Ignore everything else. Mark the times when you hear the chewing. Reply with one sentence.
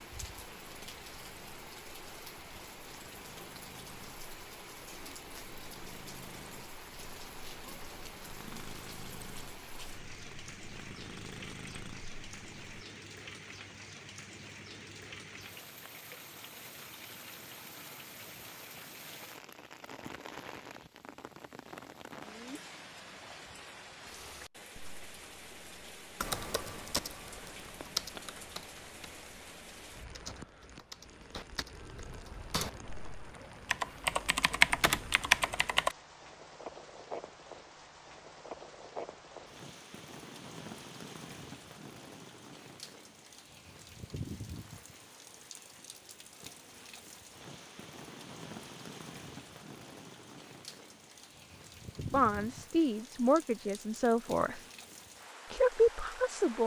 The chewing can't be heard in this clip.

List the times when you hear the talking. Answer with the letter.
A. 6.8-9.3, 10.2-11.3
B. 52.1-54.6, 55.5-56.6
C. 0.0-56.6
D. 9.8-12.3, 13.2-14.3
B.